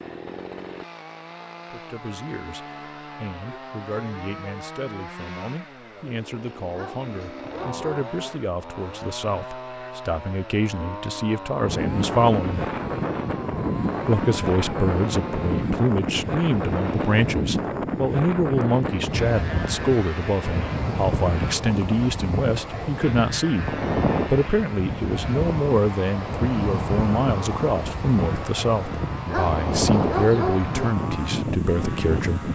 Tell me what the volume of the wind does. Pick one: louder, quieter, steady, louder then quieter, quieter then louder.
steady.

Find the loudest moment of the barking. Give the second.
30 s.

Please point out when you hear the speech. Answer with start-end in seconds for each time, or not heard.
1.7-12.7, 14.1-32.5.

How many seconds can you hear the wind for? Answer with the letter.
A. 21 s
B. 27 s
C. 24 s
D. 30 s
A.